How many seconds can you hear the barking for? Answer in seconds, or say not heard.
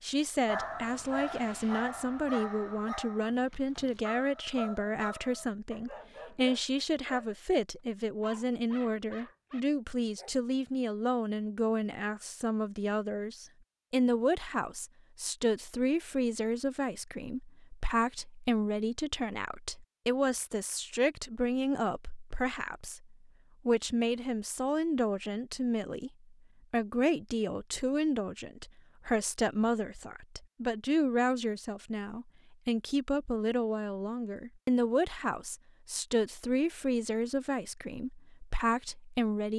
9 s.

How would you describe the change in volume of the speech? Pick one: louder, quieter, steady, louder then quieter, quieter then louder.
steady.